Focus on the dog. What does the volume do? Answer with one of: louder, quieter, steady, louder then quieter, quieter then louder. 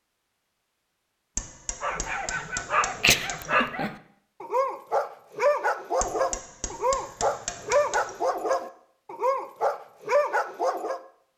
steady.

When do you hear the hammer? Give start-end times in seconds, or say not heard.
1.4-3.6, 6.0-8.6.